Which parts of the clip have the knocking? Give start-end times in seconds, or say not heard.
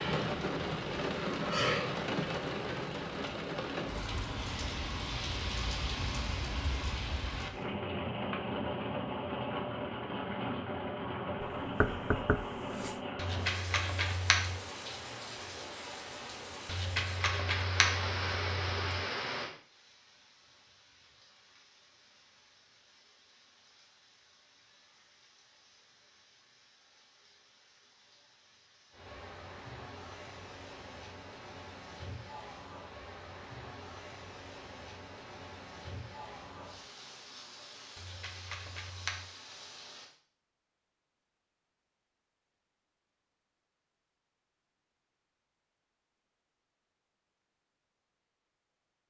11.4-12.9.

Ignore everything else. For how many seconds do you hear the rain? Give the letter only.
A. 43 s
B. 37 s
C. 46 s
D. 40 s
D.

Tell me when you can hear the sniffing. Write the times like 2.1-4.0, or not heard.
not heard.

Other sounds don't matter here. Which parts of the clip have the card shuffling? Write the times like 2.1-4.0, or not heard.
13.2-14.6, 16.6-18.9, 38.0-39.2.